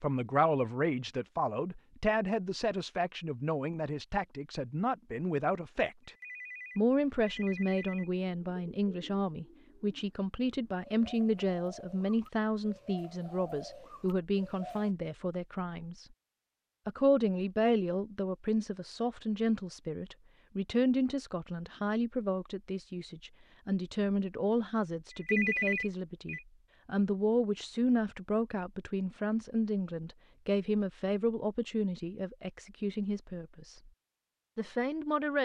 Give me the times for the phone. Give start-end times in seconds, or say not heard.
6.0-8.1, 25.1-26.4.